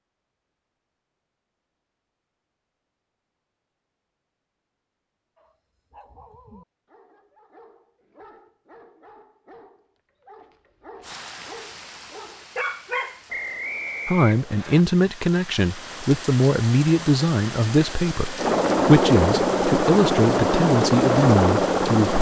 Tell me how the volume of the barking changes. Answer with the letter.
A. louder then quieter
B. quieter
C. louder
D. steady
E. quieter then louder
C.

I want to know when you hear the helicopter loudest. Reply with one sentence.
The loudest moment of the helicopter is at 21 seconds.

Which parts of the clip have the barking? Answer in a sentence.
The barking can be heard from 5.3 to 13.2 s.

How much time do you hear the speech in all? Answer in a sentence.
You can hear the speech for 8 seconds altogether.